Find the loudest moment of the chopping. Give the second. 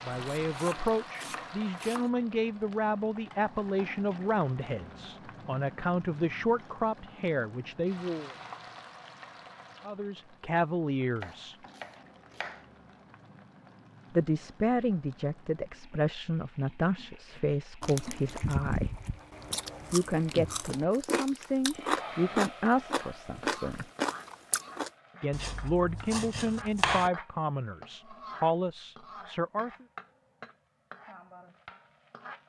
27 s.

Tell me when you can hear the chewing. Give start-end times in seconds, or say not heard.
17.4-24.9.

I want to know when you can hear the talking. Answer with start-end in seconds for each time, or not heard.
0.0-8.3, 9.8-11.6, 14.1-18.9, 19.9-23.9, 25.2-29.9.